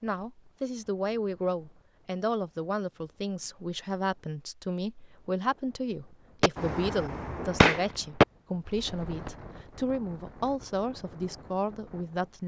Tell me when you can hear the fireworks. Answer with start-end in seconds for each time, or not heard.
6.4-9.3.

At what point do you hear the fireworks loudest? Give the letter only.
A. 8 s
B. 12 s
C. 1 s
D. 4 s
A.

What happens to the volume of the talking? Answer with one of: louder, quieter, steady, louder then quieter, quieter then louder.
steady.